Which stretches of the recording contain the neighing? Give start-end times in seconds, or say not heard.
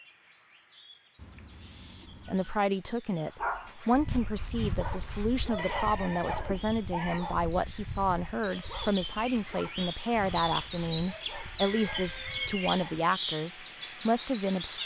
1.1-2.6, 5.5-7.2, 11.8-12.5.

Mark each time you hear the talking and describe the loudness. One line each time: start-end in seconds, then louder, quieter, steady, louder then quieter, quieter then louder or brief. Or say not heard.
2.2-14.8 steady.